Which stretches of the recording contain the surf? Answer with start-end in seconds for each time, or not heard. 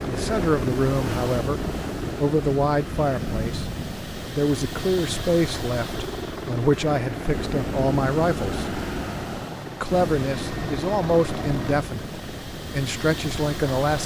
0.0-14.0.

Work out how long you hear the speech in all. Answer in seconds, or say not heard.
13 s.